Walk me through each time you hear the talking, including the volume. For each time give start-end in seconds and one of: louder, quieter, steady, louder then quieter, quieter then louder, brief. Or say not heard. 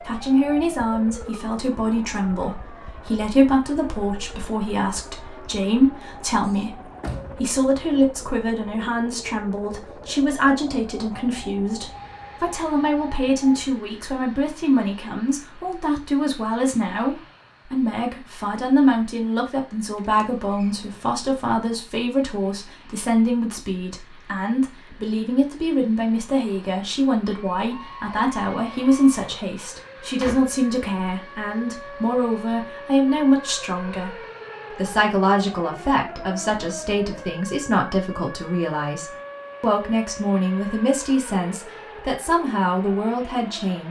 0.0-43.8 steady.